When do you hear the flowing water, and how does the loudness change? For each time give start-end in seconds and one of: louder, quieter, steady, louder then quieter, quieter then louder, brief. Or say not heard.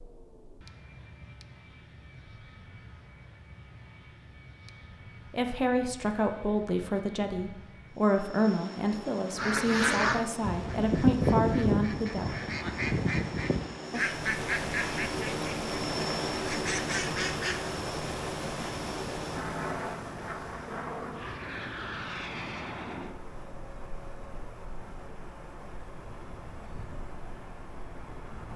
14.0-28.5 quieter.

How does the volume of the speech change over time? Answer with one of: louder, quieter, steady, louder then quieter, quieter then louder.
steady.